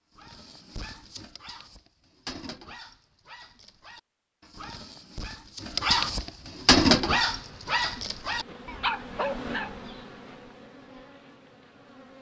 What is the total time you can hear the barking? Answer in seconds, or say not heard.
10 s.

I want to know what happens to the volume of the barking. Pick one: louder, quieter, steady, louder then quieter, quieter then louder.
louder then quieter.